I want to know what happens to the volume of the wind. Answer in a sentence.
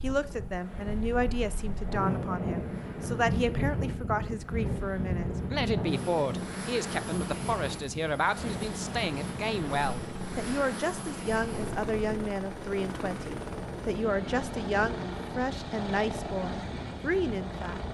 The loudness of the wind goes down.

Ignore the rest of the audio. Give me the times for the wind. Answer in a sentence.
The wind can be heard from 0.0 to 17.8 s.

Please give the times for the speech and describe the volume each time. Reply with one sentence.
The speech can be heard from 0.0 to 17.8 s, at a steady volume.